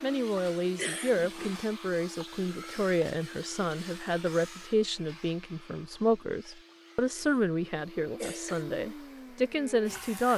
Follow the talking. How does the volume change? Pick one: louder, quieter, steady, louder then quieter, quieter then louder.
steady.